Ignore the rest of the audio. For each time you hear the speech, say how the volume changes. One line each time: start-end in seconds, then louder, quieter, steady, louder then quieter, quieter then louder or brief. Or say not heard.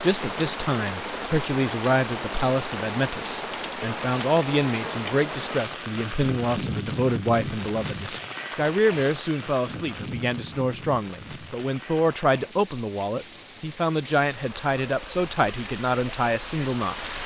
0.0-17.1 steady.